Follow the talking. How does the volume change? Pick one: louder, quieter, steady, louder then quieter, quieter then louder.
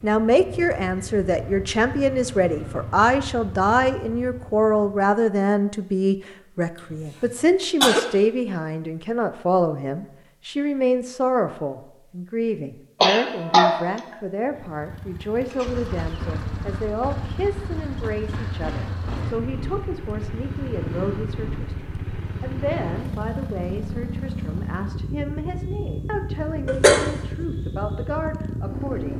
quieter.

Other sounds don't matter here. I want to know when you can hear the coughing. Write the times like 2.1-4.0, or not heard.
7.2-8.0, 13.0-14.2, 26.6-27.1.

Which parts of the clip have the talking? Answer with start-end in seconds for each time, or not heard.
0.0-29.1.